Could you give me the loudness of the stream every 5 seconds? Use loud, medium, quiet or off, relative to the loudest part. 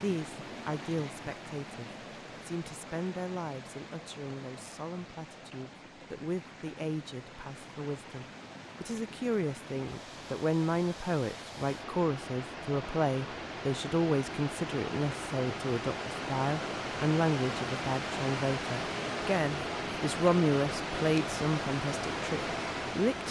medium, quiet, medium, loud, loud.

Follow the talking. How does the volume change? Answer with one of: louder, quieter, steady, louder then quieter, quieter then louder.
louder.